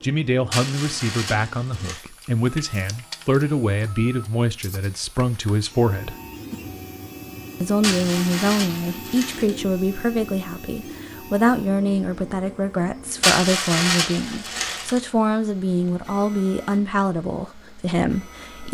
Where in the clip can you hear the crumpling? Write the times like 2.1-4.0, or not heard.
0.5-2.0, 7.8-9.6, 13.2-15.0.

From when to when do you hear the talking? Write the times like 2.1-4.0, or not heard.
0.0-6.2, 7.6-18.6.